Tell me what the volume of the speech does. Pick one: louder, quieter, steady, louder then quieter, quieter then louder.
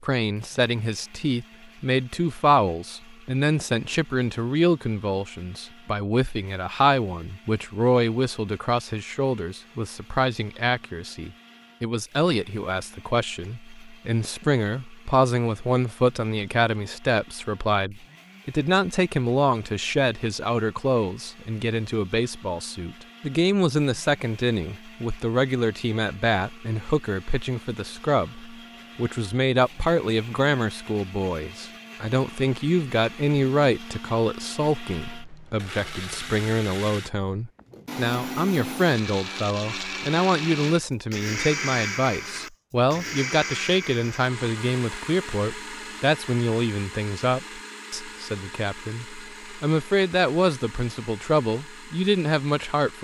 steady.